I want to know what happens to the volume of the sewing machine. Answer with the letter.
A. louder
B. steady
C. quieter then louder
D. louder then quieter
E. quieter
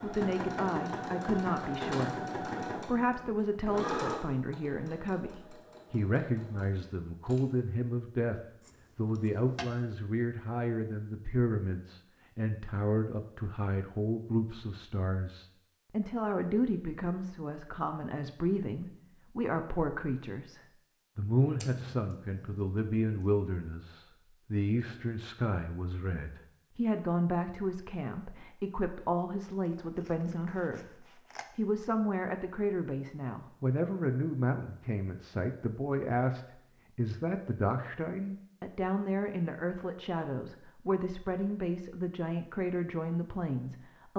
E.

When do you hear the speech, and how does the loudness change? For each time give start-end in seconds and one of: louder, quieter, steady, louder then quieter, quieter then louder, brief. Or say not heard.
0.0-44.1 steady.